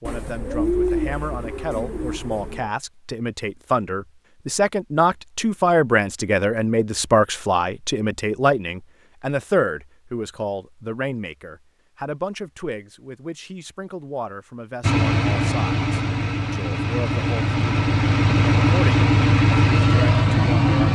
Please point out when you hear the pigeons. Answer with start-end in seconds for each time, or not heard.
0.1-2.7.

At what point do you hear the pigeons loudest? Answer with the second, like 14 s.
1 s.